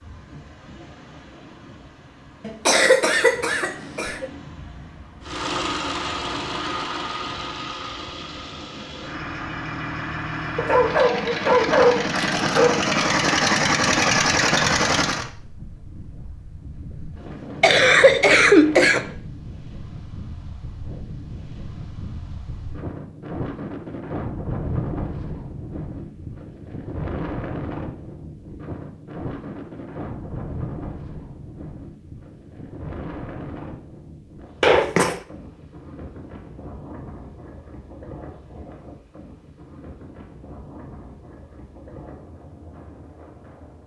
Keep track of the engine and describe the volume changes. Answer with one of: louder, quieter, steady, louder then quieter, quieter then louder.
quieter then louder.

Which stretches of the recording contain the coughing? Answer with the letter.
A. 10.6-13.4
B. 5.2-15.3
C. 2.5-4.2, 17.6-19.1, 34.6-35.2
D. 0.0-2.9
C.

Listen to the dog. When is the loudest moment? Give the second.
12 s.